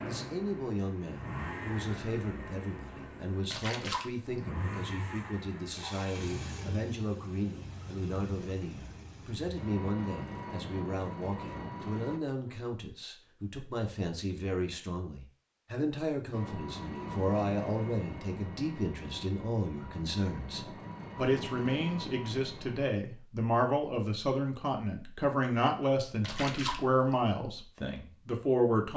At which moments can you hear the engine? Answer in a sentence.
The engine can be heard from 0.0 to 12.2 s and from 16.3 to 22.9 s.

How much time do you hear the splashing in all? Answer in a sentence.
The splashing can be heard for 2 seconds in total.